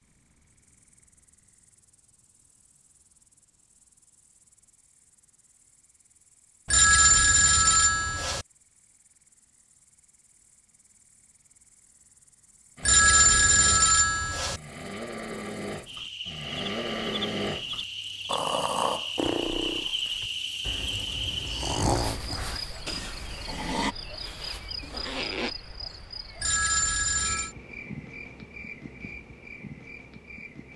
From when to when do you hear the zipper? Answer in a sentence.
The zipper can be heard from 24.8 to 25.6 s.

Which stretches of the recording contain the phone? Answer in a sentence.
You can hear the phone from 6.7 to 8.4 s, from 12.8 to 14.6 s and from 26.4 to 27.6 s.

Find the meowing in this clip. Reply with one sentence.
You can't hear the meowing here.